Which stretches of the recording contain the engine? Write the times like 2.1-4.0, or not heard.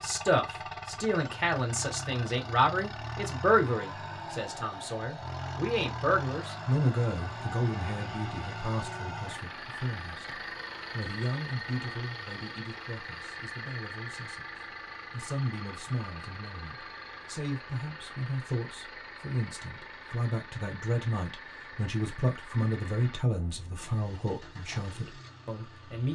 0.0-26.1.